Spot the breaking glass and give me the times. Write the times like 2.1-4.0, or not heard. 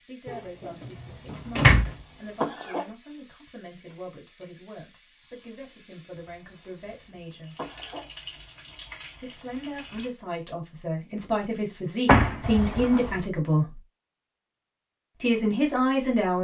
not heard.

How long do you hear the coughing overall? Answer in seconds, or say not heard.
5 s.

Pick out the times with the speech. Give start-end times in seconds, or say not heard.
0.1-7.5, 9.2-13.8, 15.2-16.3.